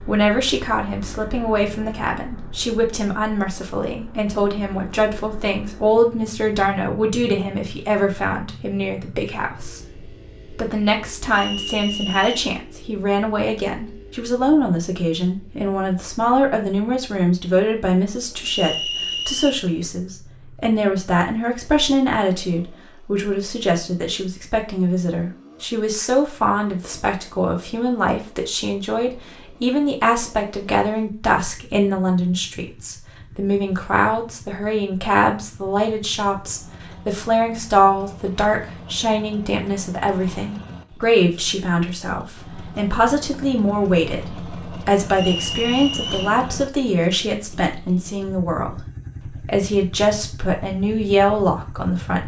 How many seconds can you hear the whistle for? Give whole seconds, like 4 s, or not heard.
3 s.